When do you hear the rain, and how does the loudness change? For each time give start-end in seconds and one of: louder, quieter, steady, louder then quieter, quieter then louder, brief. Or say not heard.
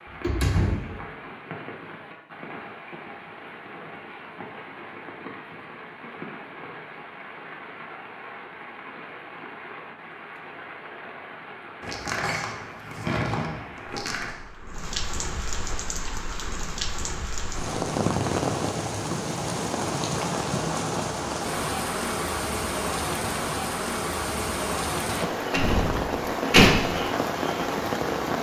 0.0-28.3 louder.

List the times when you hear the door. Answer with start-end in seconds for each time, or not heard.
0.1-0.9, 11.8-14.3, 25.1-26.7.